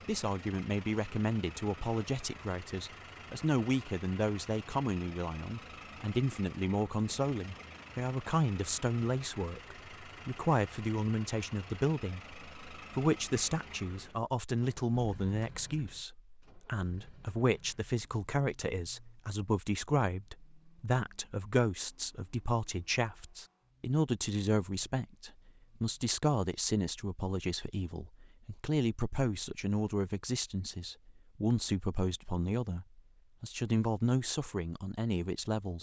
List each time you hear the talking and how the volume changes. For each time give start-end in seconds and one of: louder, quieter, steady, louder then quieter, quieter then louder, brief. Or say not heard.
0.1-35.7 steady.